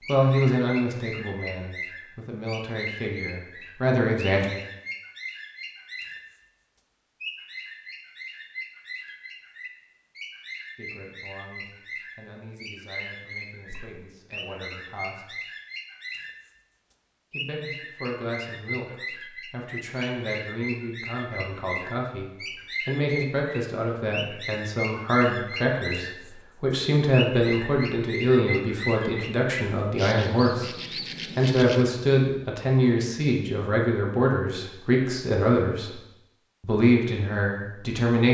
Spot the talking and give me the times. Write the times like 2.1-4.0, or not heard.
0.1-4.5, 10.8-15.4, 17.3-30.7, 31.4-36.0, 36.6-38.2.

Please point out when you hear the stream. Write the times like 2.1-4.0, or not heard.
not heard.